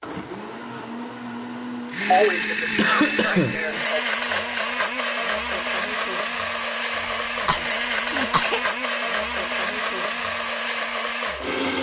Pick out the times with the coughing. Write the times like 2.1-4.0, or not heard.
2.1-4.0, 7.0-8.6.